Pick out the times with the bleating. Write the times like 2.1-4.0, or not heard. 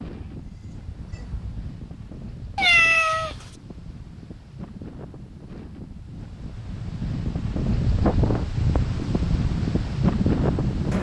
0.1-1.7.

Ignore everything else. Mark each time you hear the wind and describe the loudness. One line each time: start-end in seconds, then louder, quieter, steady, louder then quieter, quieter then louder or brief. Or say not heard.
0.0-10.9 louder.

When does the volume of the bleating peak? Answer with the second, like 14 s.
1 s.